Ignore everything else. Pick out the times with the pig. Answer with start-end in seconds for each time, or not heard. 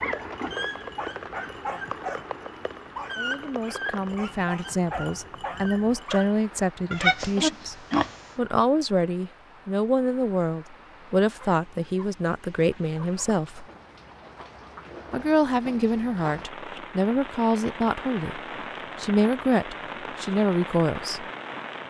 6.9-8.2.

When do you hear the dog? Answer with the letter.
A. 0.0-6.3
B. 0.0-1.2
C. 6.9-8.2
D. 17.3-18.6
A.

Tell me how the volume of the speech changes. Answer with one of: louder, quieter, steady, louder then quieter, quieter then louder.
steady.